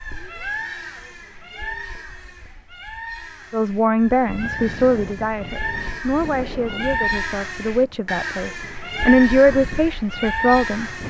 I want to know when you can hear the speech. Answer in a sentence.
The speech can be heard from 3.5 to 10.9 s.